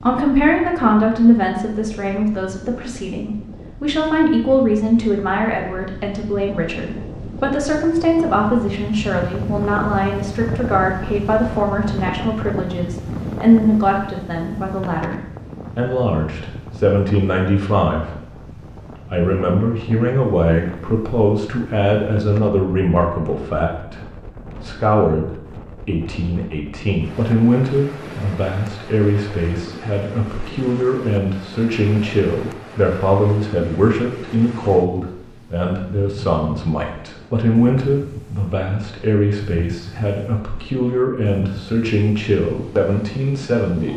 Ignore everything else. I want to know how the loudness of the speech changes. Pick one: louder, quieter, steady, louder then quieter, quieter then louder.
steady.